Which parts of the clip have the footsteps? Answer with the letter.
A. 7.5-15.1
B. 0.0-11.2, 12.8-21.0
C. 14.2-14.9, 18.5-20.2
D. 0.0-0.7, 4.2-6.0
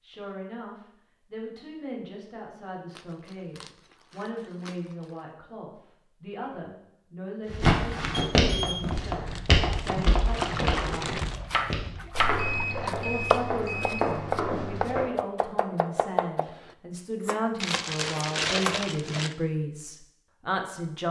A.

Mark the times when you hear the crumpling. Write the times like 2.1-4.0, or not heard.
2.9-5.2, 8.8-11.4, 17.6-19.4.